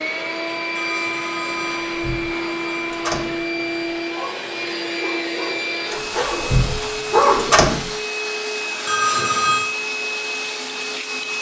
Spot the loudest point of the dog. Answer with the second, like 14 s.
7 s.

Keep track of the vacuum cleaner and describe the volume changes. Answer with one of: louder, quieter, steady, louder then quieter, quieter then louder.
steady.